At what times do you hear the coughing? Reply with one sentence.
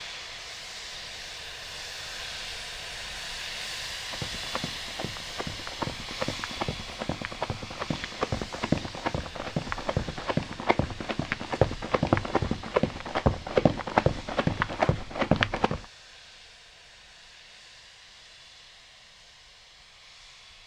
The coughing can't be heard in this clip.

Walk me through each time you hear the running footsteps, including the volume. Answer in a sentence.
You can hear the running footsteps from 4.1 to 15.8 s, getting louder.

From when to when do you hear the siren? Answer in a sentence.
The siren can't be heard in this clip.